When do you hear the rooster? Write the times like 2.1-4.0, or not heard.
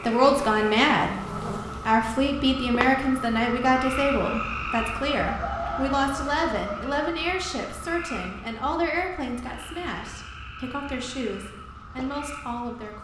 5.2-7.0.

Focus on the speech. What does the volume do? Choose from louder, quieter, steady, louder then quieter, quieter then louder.
quieter.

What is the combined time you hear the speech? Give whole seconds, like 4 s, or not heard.
13 s.